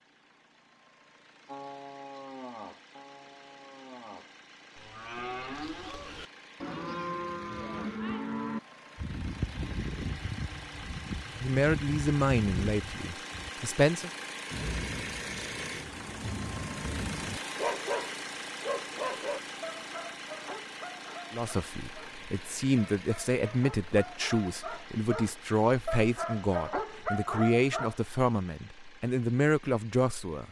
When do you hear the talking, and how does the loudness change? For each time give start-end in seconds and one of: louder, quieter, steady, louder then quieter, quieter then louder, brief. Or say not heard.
11.4-14.1 brief
21.3-30.4 steady.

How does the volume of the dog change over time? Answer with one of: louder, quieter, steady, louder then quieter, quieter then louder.
quieter then louder.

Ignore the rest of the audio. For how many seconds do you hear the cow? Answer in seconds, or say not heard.
12 s.